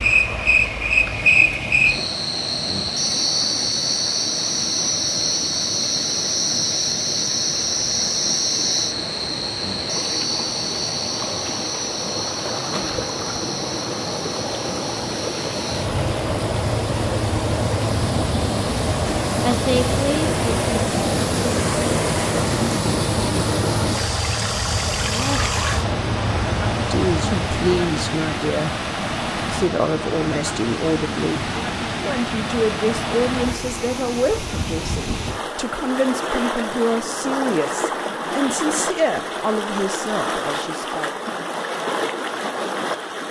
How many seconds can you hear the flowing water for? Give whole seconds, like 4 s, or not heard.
43 s.